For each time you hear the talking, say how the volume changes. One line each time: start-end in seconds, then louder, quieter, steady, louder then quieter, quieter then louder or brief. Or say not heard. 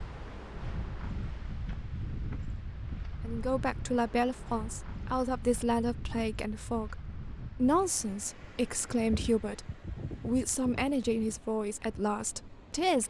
3.2-13.0 steady.